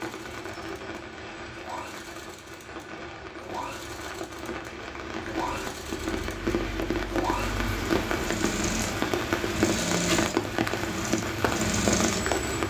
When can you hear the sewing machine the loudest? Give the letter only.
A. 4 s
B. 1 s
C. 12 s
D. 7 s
C.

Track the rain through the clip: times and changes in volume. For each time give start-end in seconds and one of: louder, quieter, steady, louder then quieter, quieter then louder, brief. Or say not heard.
0.0-12.6 louder.